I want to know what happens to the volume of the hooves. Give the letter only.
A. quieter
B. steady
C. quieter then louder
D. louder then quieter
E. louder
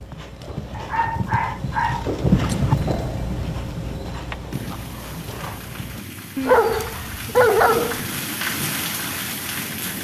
D.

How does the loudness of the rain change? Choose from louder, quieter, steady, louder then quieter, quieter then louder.
louder.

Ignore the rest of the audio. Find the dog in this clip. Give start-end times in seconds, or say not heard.
0.7-2.8, 6.3-8.1.